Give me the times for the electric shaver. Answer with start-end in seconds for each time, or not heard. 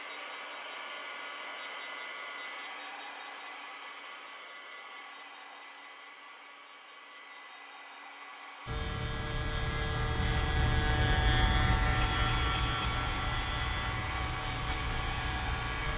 8.7-15.9.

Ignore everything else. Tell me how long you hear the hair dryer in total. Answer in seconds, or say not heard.
16 s.